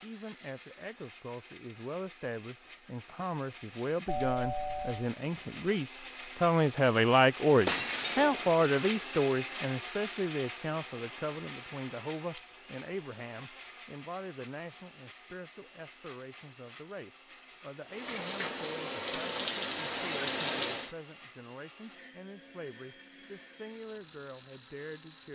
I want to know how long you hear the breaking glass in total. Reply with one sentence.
The breaking glass can be heard for 2 seconds in total.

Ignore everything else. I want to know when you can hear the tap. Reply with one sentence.
You can hear the tap from 17.9 to 20.9 s.